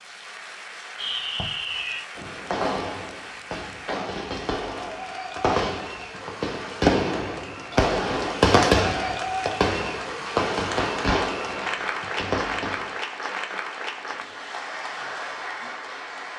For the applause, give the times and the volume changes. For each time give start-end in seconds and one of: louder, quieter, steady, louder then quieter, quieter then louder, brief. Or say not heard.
0.0-16.3 louder.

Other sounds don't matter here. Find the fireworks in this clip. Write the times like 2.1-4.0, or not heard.
0.9-12.9.